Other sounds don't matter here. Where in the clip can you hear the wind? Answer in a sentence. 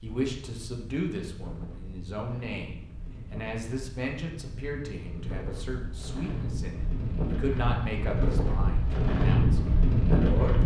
The wind can be heard from 0.0 to 10.6 s.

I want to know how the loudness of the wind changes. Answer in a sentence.
The volume of the wind goes up.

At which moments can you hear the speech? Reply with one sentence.
The speech can be heard from 0.0 to 10.6 s.